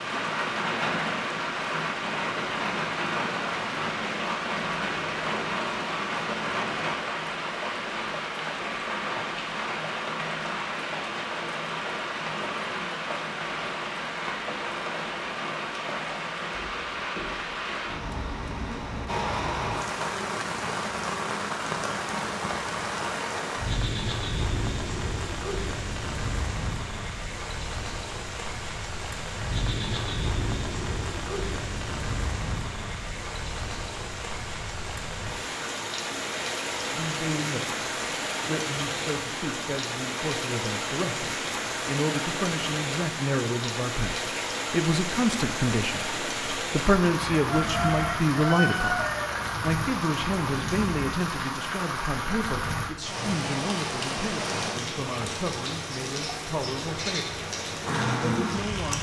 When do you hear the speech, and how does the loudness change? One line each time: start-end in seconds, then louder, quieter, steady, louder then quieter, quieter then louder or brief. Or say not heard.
36.9-57.5 louder then quieter
58.1-58.9 brief.